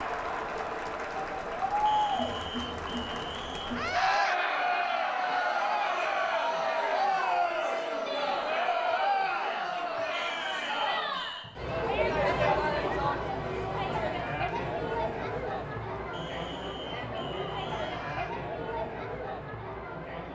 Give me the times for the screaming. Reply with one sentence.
The screaming can be heard from 3.7 to 4.4 s and from 17.7 to 18.4 s.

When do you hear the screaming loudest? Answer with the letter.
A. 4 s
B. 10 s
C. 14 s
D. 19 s
A.